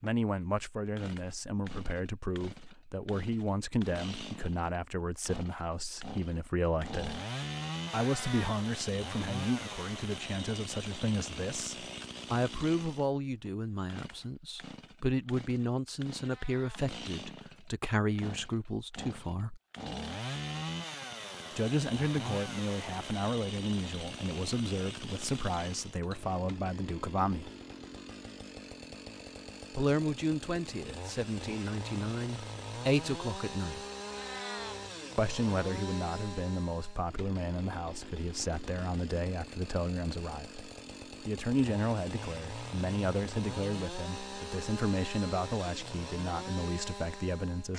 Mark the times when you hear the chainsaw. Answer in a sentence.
The chainsaw can be heard from 0.0 to 47.7 s.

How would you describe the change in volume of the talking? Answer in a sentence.
The volume of the talking stays about the same.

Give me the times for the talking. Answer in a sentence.
The talking can be heard from 0.0 to 7.2 s, from 7.9 to 19.6 s, from 21.6 to 27.5 s, from 29.7 to 33.8 s and from 35.1 to 47.7 s.